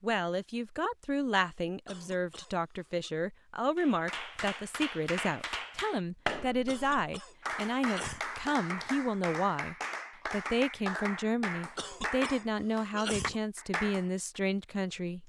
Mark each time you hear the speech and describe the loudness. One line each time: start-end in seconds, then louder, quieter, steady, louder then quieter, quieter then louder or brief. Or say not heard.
0.0-15.2 steady.